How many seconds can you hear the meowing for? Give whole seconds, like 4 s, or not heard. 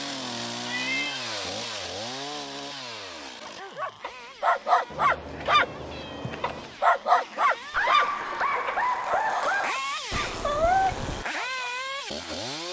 4 s.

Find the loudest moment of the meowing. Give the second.
11 s.